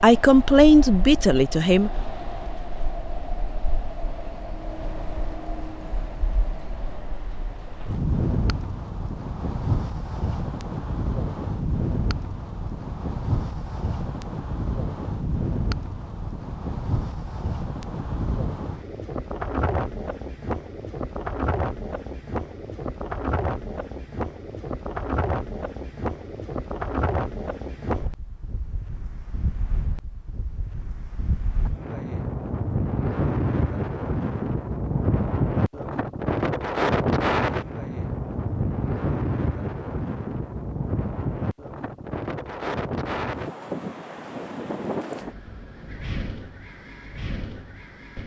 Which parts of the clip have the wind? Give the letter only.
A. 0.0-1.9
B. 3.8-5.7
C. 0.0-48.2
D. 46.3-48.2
C.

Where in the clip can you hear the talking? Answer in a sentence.
You can hear the talking from 0.0 to 1.9 s.